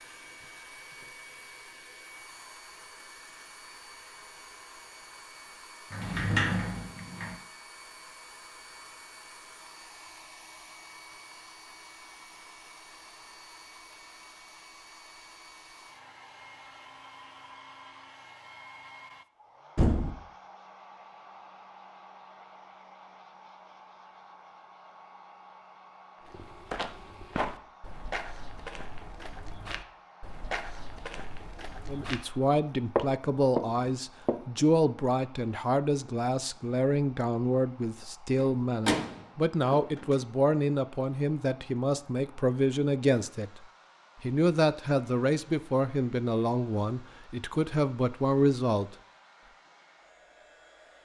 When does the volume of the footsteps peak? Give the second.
33 s.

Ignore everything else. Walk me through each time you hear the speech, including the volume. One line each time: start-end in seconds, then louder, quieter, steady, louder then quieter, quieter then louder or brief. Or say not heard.
31.9-49.0 steady.